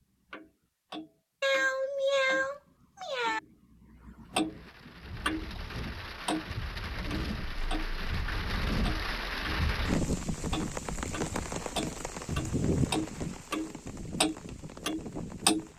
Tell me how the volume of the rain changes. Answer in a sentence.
The volume of the rain goes up, then down.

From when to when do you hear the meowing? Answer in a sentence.
The meowing can be heard from 1.4 to 3.4 s and from 12.2 to 13.1 s.